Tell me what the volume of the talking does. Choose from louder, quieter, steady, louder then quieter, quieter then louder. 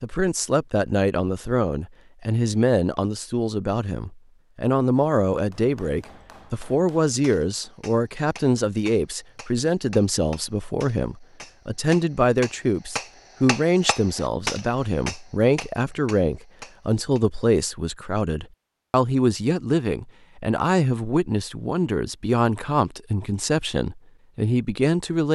steady.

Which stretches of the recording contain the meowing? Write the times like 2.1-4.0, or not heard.
not heard.